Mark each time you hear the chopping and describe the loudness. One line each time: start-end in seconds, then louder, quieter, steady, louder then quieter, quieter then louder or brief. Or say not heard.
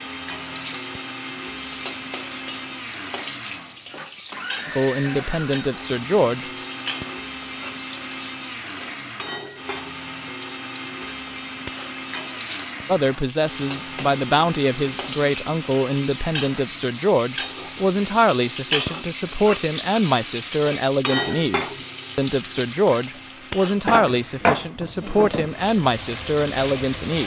not heard.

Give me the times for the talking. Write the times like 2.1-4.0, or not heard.
4.7-6.5, 12.8-27.2.